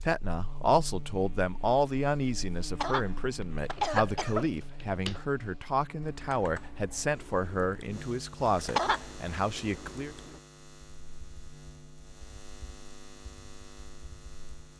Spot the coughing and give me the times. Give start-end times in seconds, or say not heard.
2.8-4.5, 8.8-9.4.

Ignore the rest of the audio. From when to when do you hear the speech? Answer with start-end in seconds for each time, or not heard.
0.0-10.1.